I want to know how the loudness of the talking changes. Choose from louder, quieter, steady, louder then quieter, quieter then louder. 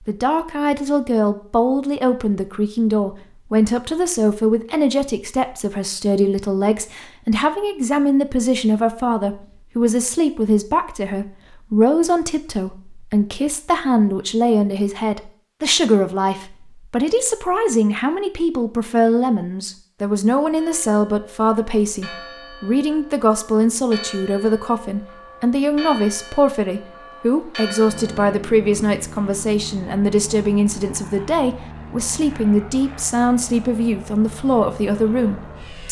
steady.